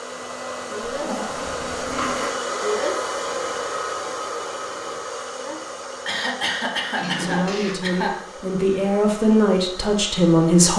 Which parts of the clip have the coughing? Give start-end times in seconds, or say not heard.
1.4-2.1, 6.0-8.2.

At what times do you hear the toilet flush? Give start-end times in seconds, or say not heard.
0.8-2.4, 7.0-7.8.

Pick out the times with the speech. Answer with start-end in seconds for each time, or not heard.
7.2-10.7.